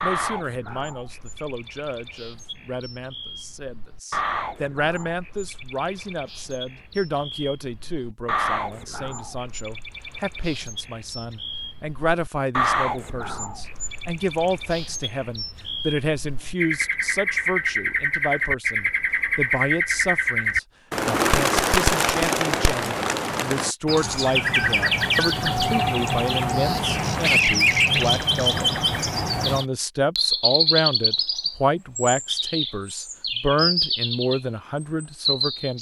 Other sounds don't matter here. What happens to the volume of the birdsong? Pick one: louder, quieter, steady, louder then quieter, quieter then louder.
louder.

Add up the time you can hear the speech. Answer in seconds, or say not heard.
35 s.